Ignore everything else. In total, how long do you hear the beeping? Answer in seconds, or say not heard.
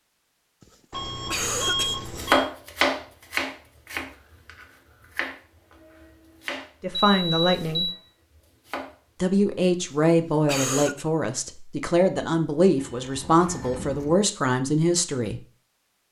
4 s.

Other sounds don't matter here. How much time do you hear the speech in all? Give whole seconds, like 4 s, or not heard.
7 s.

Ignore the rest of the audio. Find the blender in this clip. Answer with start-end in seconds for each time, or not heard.
not heard.